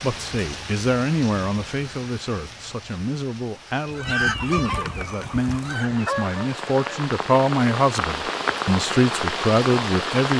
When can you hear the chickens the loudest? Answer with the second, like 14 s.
4 s.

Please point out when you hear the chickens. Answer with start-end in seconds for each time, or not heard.
3.8-7.0.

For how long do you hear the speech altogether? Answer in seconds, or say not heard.
10 s.